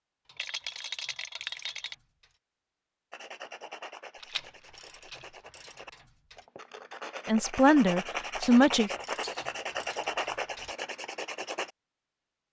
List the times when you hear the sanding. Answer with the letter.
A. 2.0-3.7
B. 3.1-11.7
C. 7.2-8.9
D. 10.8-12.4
B.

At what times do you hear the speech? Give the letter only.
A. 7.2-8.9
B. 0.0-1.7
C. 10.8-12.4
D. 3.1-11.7
A.